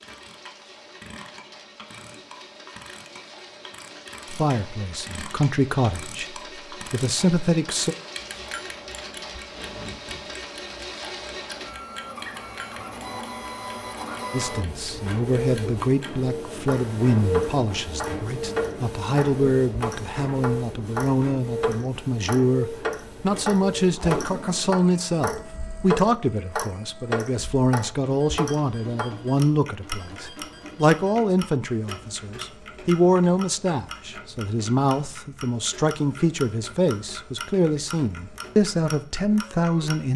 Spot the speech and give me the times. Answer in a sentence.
The speech can be heard from 4.3 to 8.0 s and from 14.3 to 40.1 s.